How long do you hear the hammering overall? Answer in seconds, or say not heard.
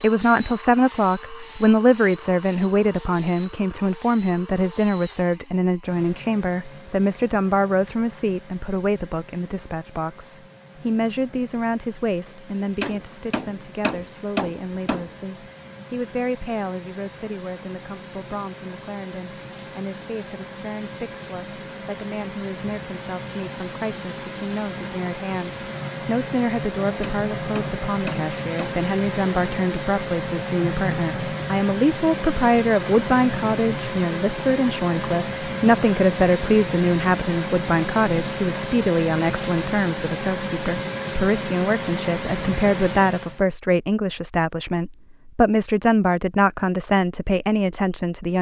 4 s.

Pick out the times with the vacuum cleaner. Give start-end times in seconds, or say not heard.
0.0-43.4.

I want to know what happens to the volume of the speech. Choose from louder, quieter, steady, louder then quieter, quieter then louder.
quieter then louder.